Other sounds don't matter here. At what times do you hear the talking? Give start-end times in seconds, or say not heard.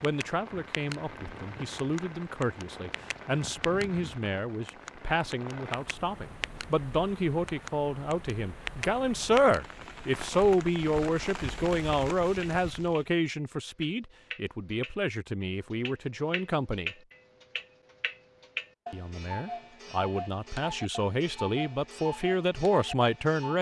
0.0-16.9, 18.9-23.5.